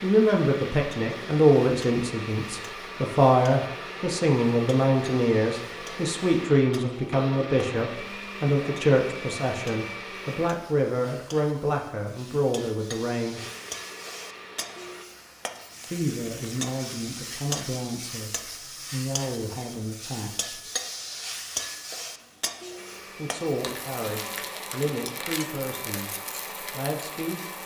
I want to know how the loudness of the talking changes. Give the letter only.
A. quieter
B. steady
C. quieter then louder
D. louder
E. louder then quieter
A.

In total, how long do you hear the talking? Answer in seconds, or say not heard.
22 s.